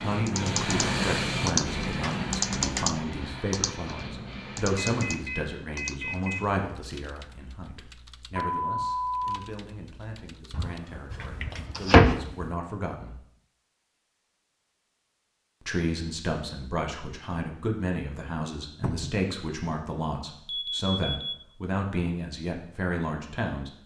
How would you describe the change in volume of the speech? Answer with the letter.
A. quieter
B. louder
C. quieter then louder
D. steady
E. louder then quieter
C.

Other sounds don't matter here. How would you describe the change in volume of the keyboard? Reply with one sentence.
The volume of the keyboard goes down.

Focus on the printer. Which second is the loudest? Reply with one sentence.
The volume of the printer peaks at 1 second.